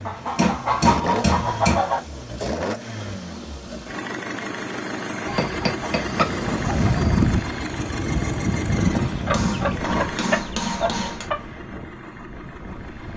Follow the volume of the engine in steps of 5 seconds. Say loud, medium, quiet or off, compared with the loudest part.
loud, loud, medium.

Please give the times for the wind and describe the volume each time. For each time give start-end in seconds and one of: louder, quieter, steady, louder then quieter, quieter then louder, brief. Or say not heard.
6.0-13.1 quieter.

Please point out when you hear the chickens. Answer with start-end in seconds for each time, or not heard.
0.1-2.0, 5.2-7.2, 9.1-11.3.